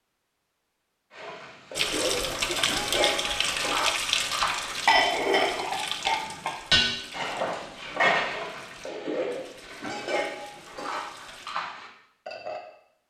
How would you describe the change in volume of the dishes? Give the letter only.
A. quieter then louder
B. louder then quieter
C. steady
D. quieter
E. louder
B.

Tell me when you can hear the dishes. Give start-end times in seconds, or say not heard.
1.1-12.6.